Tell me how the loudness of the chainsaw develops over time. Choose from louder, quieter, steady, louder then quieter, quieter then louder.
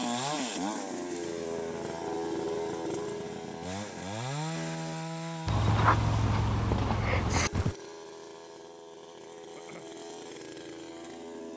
quieter.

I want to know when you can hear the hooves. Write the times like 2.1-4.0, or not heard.
5.5-7.8.